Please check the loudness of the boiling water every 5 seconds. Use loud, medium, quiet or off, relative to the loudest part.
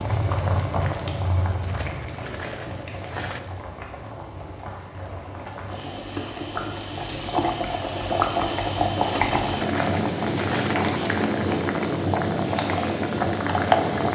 medium, loud, loud.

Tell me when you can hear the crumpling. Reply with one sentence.
You can hear the crumpling from 1.6 to 3.4 s and from 9.0 to 10.8 s.